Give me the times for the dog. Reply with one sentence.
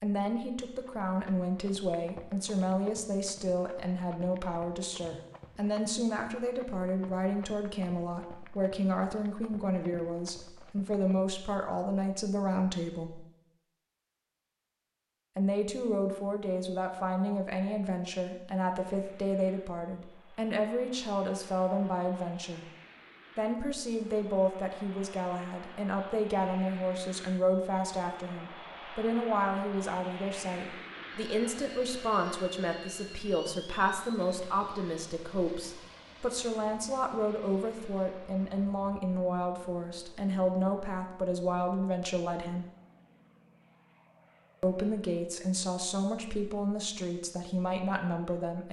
The dog can't be heard in this clip.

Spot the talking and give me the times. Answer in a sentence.
You can hear the talking from 0.0 to 13.2 s, from 15.3 to 22.6 s, from 23.4 to 42.6 s and from 44.6 to 48.6 s.